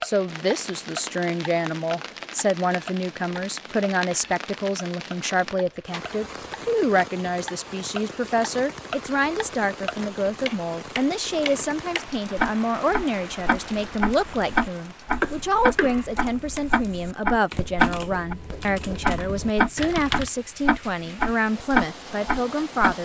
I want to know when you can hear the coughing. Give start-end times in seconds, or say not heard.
15.2-16.1.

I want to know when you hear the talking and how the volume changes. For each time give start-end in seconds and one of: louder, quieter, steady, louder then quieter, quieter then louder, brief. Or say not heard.
0.0-23.0 steady.